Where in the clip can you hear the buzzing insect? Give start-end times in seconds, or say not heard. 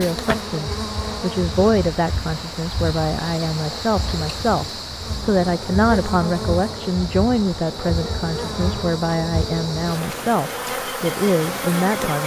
0.0-12.2.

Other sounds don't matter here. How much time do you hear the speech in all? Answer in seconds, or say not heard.
12 s.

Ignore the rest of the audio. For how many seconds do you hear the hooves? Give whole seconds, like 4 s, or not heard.
not heard.